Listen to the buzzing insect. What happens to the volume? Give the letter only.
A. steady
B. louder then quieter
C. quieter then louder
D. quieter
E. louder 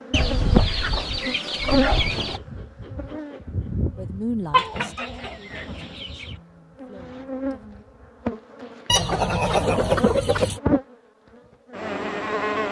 C.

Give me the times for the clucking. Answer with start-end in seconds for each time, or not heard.
0.1-2.4, 4.5-6.3, 8.8-10.6.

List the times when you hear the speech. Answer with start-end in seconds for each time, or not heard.
4.0-7.8.